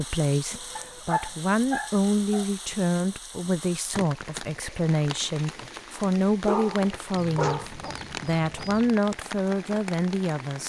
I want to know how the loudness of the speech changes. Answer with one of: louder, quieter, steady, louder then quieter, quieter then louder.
steady.